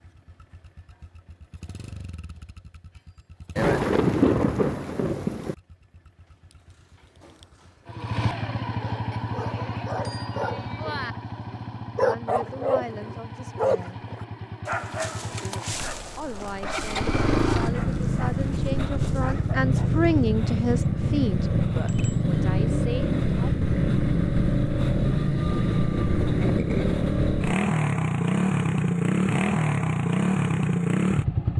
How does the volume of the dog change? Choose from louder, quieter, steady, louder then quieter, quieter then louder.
louder then quieter.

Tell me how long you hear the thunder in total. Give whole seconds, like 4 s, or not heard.
2 s.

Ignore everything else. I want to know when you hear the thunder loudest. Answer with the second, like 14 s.
4 s.